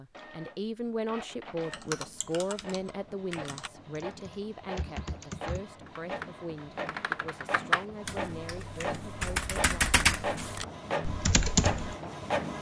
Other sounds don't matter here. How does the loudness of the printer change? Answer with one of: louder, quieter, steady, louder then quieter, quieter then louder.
louder.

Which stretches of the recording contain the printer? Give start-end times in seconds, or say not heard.
0.1-12.5.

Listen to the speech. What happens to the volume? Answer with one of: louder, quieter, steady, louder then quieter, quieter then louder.
quieter.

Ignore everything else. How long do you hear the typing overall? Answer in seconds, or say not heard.
10 s.